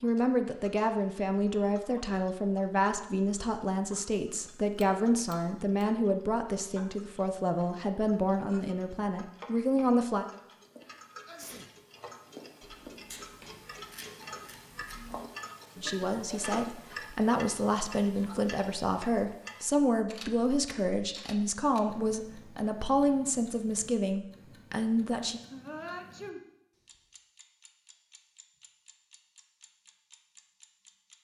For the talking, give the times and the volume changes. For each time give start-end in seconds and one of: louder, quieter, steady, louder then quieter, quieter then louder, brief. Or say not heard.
0.0-10.2 steady
15.8-25.4 steady.